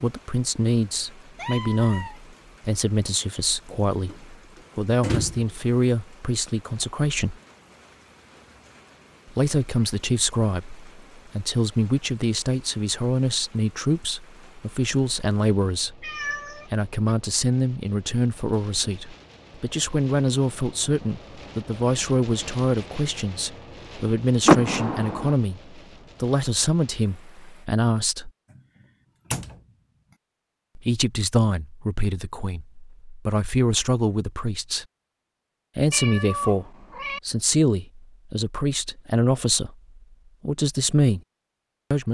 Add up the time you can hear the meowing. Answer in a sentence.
The meowing can be heard for 3 seconds in total.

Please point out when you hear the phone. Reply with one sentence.
You can't hear the phone here.